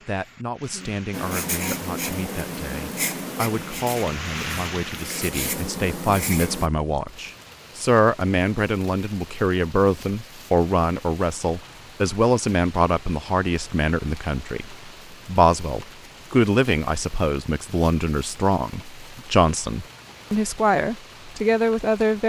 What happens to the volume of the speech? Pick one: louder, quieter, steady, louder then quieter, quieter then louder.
louder.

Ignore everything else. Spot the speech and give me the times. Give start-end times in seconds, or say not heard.
0.1-22.2.